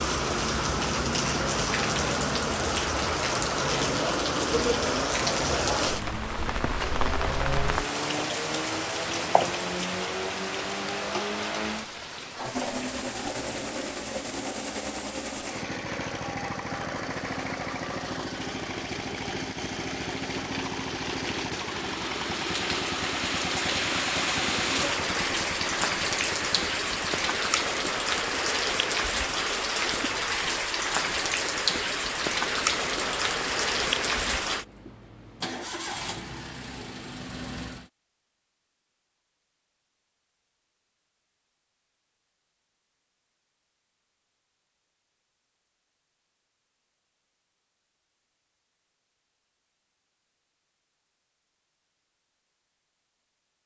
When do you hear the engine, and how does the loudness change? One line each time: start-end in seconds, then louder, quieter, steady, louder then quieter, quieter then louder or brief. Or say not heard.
0.0-37.9 quieter.